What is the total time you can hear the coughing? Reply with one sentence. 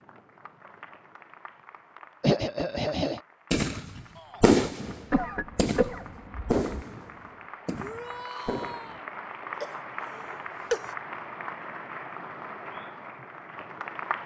The coughing can be heard for 4 seconds in total.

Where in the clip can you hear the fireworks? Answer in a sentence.
You can hear the fireworks from 3.5 to 9.0 s.